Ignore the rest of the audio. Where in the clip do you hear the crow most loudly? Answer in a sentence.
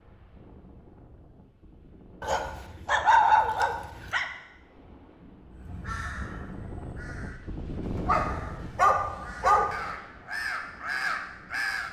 The loudest moment of the crow is at 11 seconds.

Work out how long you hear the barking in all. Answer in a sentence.
You can hear the barking for 4 seconds altogether.